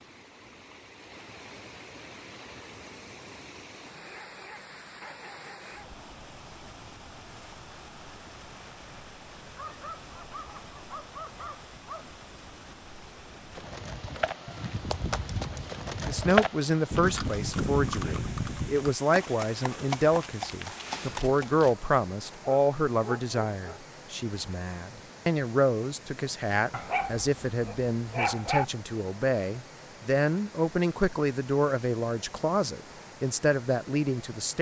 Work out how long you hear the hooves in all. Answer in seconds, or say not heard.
8 s.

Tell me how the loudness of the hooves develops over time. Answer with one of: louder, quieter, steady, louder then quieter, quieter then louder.
louder then quieter.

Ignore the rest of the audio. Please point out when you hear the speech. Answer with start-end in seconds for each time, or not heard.
16.1-34.5.